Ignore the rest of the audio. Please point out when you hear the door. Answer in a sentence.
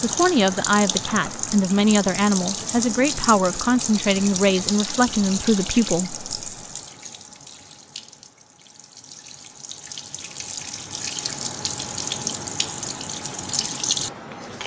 You can't hear the door here.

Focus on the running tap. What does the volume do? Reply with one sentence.
The volume of the running tap goes down, then up.